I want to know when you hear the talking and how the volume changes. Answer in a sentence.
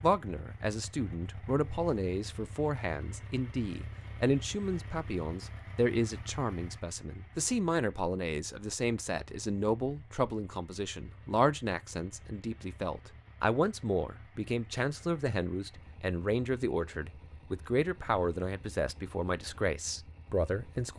You can hear the talking from 0.0 to 20.9 s, at a steady volume.